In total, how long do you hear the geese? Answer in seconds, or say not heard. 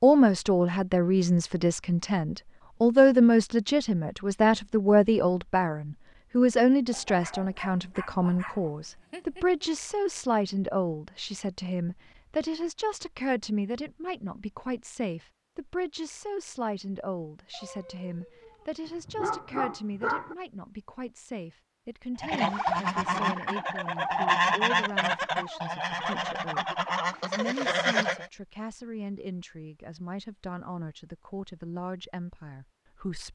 6 s.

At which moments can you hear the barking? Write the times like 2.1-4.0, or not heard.
6.9-9.7, 17.5-20.4.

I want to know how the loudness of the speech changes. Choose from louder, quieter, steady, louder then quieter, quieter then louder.
quieter.